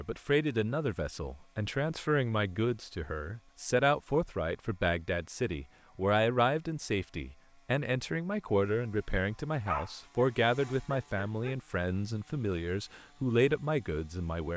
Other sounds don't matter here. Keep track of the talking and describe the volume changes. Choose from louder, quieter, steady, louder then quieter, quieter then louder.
steady.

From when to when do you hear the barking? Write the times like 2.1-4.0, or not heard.
9.7-11.6.